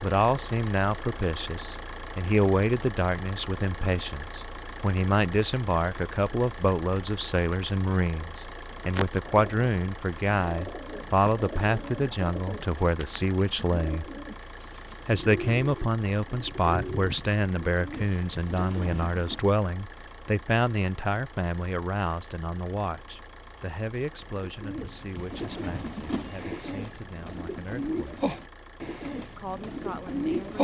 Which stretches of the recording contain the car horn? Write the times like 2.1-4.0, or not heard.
not heard.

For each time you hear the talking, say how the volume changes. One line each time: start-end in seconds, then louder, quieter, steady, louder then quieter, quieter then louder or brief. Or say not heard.
0.0-14.1 steady
15.1-28.2 quieter
29.4-30.5 brief.